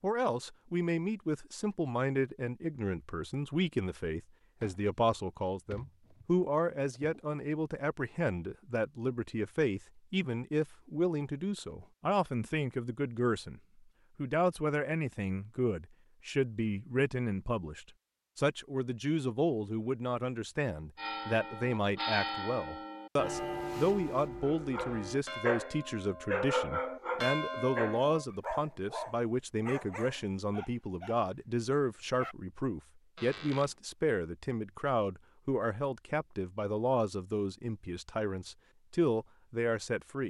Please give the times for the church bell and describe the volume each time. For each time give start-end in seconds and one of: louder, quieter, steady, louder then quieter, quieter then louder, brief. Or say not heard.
20.9-28.2 quieter then louder.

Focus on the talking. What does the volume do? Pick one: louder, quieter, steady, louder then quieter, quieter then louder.
steady.